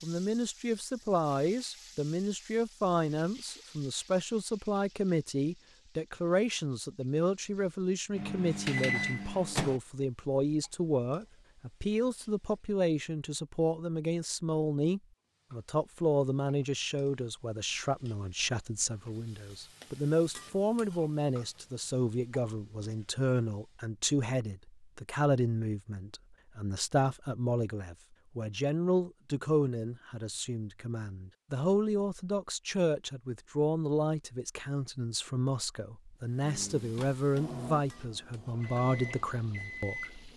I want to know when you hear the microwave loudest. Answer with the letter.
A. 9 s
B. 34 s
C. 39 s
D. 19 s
A.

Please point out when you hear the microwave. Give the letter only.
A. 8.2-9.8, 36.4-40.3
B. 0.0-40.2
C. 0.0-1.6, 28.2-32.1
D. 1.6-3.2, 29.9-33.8
A.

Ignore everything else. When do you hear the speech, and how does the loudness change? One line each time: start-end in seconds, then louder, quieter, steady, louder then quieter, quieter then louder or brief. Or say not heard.
0.0-40.2 steady.